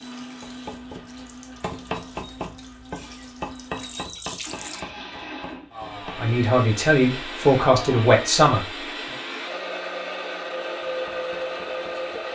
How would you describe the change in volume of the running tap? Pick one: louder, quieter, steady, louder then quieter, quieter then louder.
louder.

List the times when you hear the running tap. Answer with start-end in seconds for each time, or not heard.
0.0-4.8.